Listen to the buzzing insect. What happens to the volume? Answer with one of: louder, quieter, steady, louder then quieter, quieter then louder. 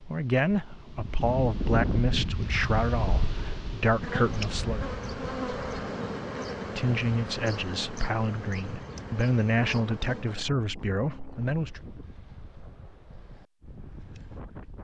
quieter.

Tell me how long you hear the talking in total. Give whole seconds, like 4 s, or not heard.
10 s.